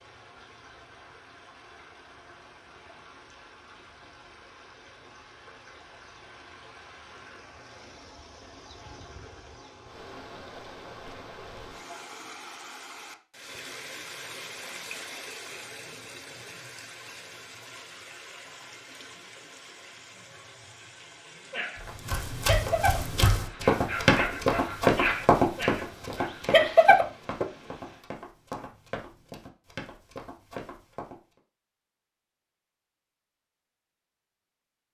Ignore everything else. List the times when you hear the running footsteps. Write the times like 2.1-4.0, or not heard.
21.8-31.1.